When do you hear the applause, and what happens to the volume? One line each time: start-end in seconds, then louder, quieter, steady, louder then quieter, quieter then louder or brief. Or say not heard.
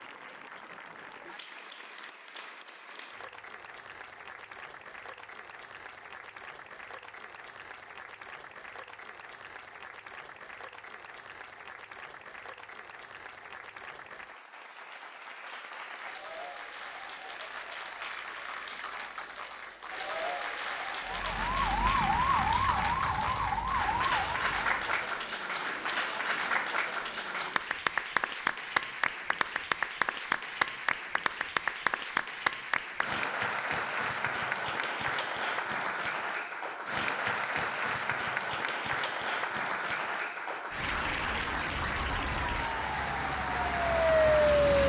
0.0-44.8 louder.